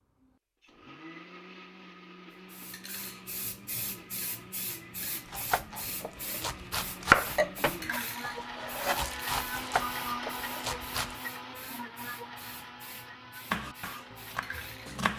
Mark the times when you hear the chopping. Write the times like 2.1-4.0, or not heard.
5.3-11.2, 13.5-15.1.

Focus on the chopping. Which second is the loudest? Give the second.
7 s.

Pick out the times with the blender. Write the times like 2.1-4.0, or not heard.
0.0-15.1.